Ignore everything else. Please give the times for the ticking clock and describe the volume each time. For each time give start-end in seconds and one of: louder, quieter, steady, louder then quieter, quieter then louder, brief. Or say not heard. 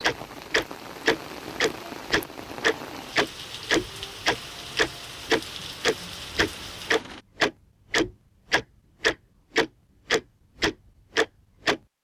0.0-11.8 steady.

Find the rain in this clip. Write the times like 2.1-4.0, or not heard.
0.0-7.2.